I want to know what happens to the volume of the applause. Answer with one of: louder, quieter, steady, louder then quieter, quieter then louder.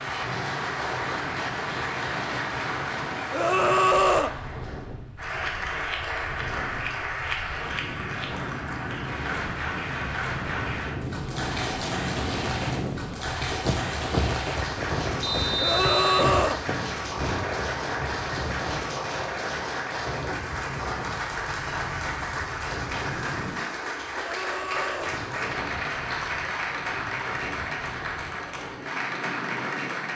steady.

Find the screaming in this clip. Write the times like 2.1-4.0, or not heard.
3.3-4.3, 15.6-16.6, 24.1-25.2.